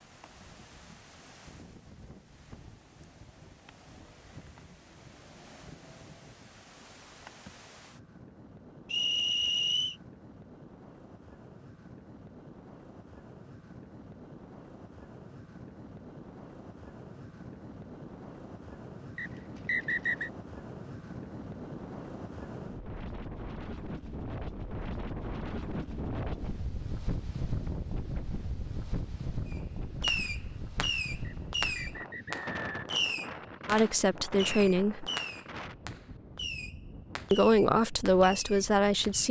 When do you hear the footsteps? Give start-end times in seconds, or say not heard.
not heard.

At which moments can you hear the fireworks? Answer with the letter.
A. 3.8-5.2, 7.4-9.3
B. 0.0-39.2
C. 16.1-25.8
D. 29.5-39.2
D.